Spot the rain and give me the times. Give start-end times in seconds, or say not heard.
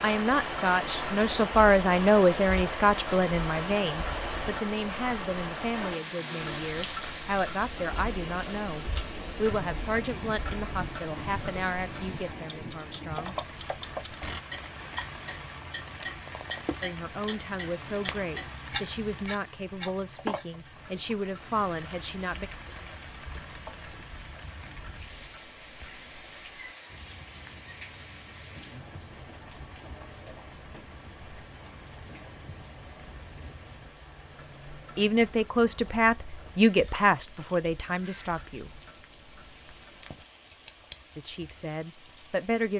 0.0-42.7.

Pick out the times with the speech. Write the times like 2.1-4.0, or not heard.
0.0-13.3, 16.8-22.5, 35.0-38.7, 41.1-42.7.